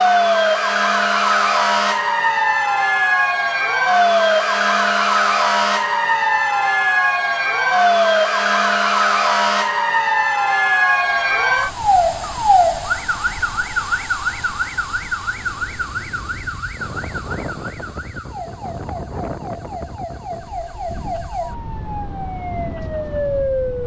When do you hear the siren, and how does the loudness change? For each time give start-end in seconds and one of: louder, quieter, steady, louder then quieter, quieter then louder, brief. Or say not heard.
0.0-23.8 quieter.